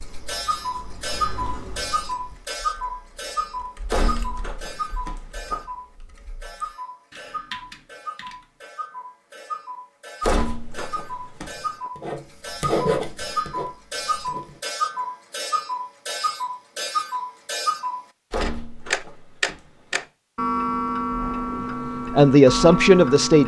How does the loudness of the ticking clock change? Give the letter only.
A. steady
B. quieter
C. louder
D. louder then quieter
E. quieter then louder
E.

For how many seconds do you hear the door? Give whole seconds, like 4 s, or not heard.
5 s.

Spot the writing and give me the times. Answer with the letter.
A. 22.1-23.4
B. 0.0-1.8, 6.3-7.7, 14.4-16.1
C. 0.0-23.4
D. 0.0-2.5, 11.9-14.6
D.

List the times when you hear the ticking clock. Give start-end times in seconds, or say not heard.
0.0-23.4.